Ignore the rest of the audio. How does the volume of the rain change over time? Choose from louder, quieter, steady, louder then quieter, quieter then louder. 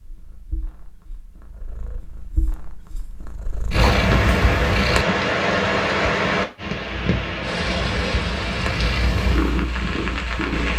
quieter.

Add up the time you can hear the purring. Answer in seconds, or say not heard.
8 s.